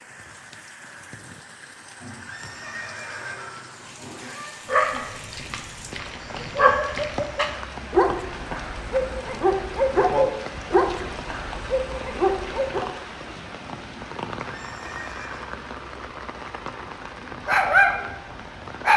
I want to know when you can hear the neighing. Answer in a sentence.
You can hear the neighing from 1.9 to 4.6 s and from 14.4 to 15.6 s.